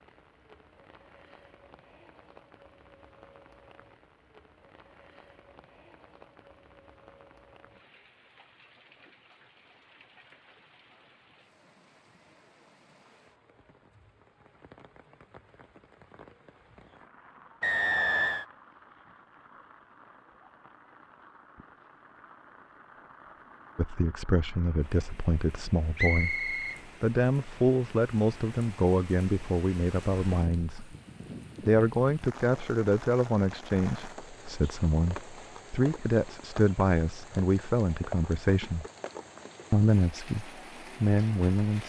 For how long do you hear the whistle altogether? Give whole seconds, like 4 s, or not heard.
2 s.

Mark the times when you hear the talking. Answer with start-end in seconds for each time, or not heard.
23.8-30.9, 31.6-38.9, 39.7-41.8.